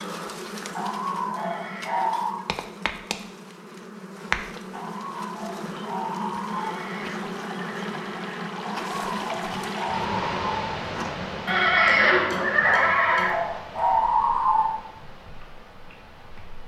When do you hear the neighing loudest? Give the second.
12 s.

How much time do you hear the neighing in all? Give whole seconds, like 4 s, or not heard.
5 s.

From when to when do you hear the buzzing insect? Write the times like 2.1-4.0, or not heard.
0.0-16.6.